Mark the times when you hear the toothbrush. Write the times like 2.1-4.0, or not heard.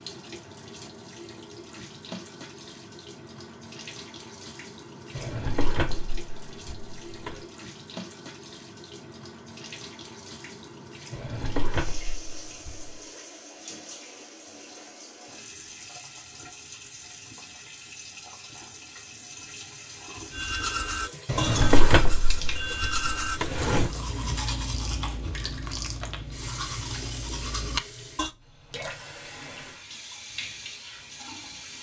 20.3-28.3.